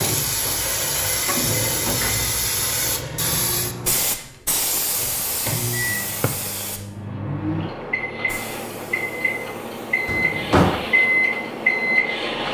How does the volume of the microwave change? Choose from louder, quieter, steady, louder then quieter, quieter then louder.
louder.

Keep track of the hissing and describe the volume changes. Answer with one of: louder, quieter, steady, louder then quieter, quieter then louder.
quieter.